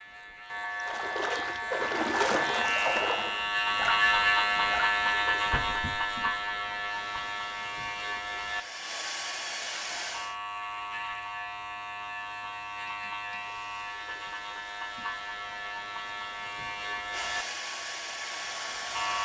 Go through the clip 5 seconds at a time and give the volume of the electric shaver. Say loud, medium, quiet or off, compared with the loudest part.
loud, loud, medium, medium.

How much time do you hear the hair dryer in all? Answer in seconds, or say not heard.
9 s.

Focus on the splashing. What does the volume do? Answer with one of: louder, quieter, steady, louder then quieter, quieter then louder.
quieter.